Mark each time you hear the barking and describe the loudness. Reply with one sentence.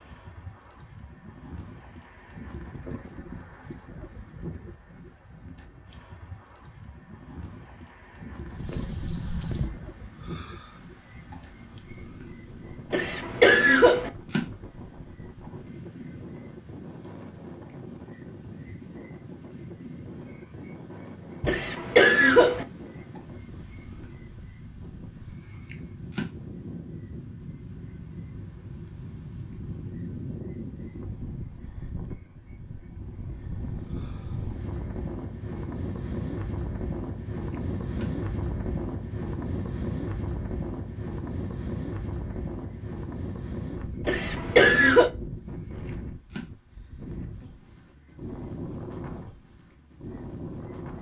You can't hear the barking here.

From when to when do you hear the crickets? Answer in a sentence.
The crickets can be heard from 8.4 to 50.9 s.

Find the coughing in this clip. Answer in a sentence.
The coughing can be heard from 12.9 to 14.1 s, from 21.4 to 22.6 s and from 44.0 to 45.1 s.